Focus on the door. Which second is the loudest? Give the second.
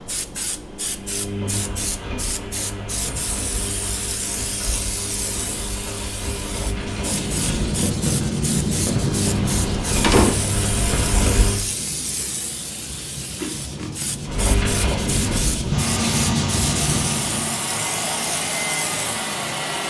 10 s.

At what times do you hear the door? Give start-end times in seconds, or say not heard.
8.9-10.3.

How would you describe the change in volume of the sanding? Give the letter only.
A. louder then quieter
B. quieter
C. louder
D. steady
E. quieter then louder
E.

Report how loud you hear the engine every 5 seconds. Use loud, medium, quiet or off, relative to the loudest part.
medium, medium, loud, loud.